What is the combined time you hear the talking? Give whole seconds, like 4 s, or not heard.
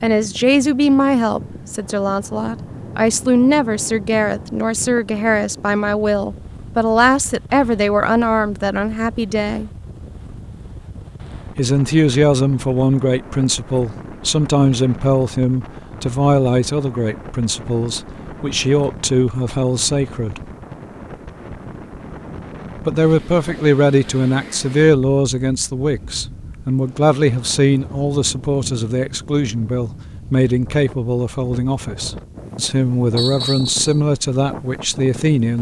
31 s.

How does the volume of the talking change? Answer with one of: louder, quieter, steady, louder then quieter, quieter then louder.
steady.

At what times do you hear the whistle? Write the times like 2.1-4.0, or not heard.
33.1-34.0.